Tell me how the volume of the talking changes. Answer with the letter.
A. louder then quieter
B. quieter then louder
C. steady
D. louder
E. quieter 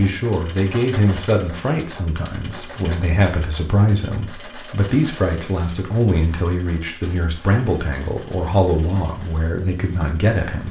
C.